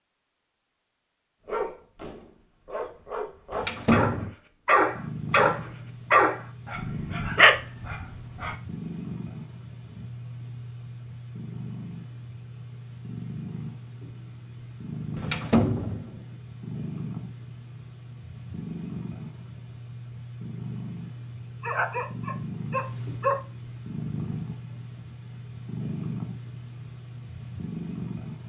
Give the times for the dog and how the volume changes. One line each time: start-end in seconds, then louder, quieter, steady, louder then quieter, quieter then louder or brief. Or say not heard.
1.4-8.6 louder
21.6-23.4 brief.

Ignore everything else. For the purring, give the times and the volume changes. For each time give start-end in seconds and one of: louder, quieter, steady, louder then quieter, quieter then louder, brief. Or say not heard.
4.8-28.4 steady.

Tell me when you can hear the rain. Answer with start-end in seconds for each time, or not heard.
not heard.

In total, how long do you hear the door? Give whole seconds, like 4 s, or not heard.
2 s.